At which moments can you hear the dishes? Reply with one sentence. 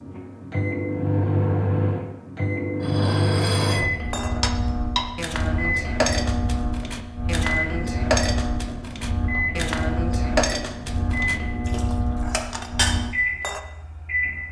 You can hear the dishes from 2.8 to 13.6 s.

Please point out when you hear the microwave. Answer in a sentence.
The microwave can be heard from 0.0 to 14.4 s.